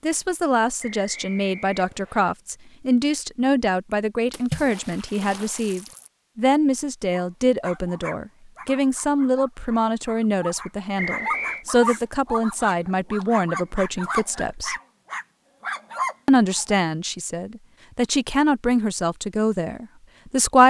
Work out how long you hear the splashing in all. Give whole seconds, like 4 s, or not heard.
2 s.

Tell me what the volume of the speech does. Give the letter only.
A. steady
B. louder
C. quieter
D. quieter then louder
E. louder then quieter
A.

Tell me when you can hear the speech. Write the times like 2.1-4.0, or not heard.
0.0-14.8, 16.2-20.6.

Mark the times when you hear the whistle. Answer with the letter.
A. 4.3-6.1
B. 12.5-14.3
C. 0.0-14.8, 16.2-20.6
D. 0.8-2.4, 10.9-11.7
D.